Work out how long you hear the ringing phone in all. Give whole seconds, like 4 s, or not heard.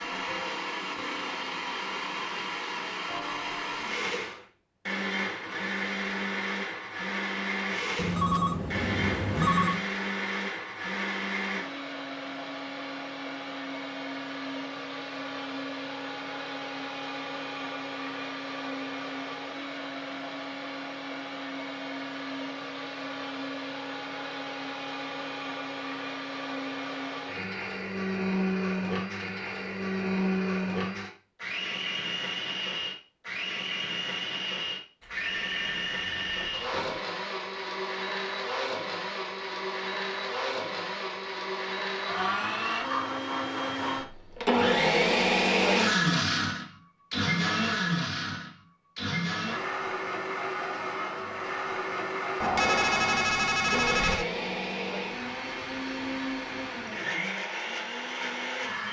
6 s.